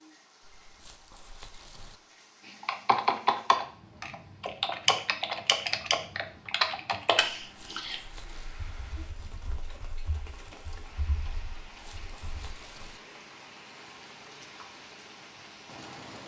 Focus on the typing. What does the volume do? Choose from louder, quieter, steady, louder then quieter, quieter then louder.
quieter.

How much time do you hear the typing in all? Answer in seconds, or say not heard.
10 s.